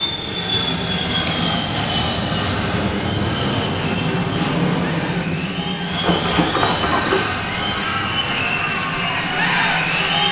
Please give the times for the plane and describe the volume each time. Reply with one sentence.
You can hear the plane from 0.0 to 10.2 s, getting quieter.